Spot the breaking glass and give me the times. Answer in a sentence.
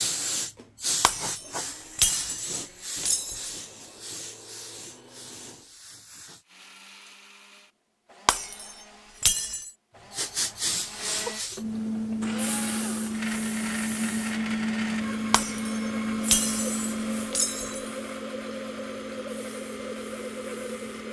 The breaking glass can be heard from 1.0 to 3.5 s, from 8.2 to 9.7 s and from 15.3 to 17.8 s.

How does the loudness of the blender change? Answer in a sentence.
The volume of the blender goes up.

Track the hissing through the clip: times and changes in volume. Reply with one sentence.
The hissing can be heard from 0.0 to 6.5 s, getting quieter; and from 10.1 to 21.0 s, getting quieter.